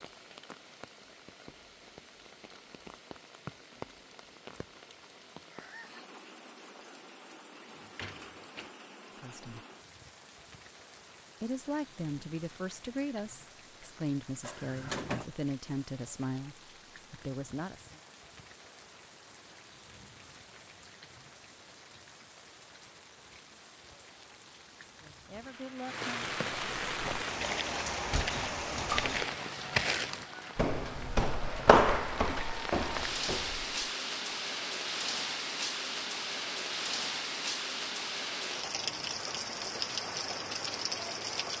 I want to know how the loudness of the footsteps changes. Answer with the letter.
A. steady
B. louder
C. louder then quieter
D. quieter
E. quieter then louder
C.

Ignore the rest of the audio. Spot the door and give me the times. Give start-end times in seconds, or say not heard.
7.6-8.7, 14.4-15.2, 27.9-29.2.